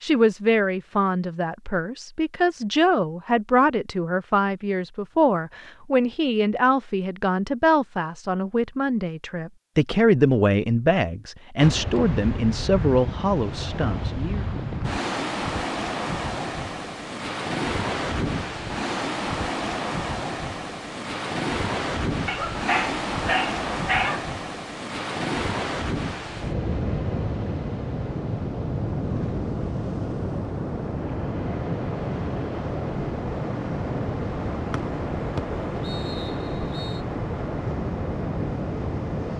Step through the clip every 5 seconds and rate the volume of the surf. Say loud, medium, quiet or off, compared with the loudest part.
off, off, loud, loud, loud, loud, loud, loud.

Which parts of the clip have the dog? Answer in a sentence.
The dog can be heard from 22.2 to 24.2 s.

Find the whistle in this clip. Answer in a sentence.
You can hear the whistle from 34.7 to 37.0 s.